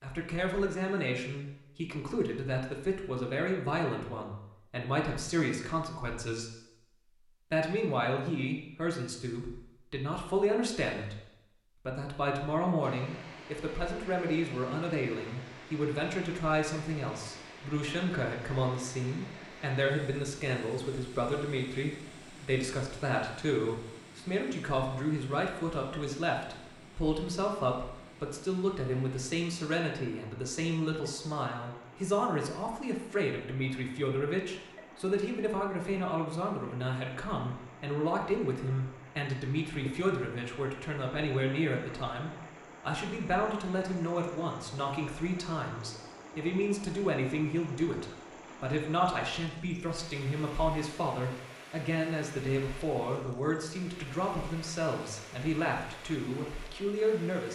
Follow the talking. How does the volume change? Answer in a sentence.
The loudness of the talking stays about the same.